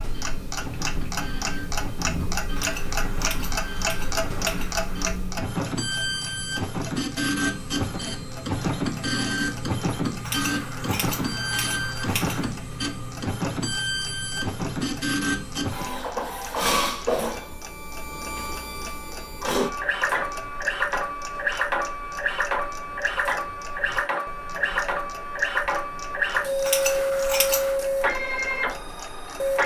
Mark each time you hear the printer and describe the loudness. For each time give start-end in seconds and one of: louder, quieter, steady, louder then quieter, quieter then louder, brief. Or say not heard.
0.0-29.6 louder.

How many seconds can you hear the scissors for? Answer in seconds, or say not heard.
6 s.